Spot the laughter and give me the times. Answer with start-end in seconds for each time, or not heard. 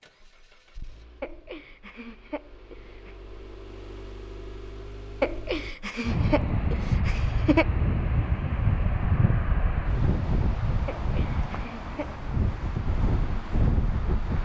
1.2-3.1, 5.2-7.7, 10.8-12.2.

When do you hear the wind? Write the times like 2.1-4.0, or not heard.
6.0-14.4.